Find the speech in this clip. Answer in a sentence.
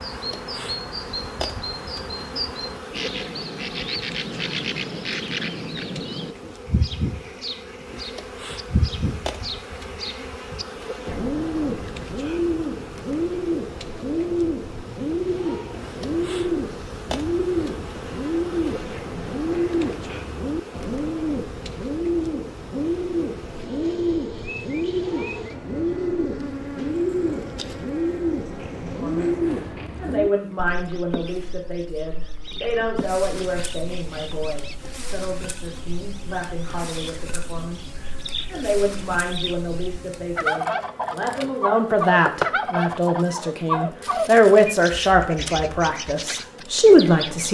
You can hear the speech from 29.0 to 47.4 s.